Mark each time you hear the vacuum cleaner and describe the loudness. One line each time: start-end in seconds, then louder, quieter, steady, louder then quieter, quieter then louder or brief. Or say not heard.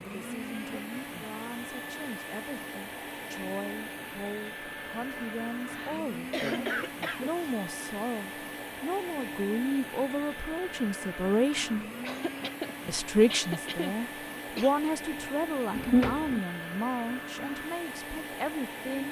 0.0-19.0 steady.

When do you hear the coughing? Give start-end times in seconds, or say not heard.
5.7-7.4, 12.0-14.8.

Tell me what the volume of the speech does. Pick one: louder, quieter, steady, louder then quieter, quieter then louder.
louder then quieter.